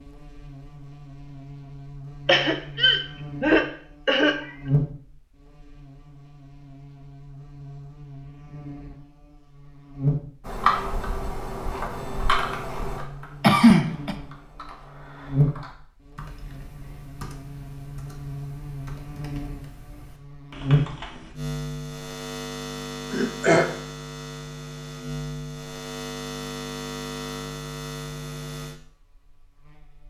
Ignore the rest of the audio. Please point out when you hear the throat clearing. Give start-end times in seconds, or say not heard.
2.2-4.5, 13.4-14.2, 23.1-23.6.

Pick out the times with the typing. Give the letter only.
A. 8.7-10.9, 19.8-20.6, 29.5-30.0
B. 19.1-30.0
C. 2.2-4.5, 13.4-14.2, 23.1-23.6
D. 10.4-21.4
D.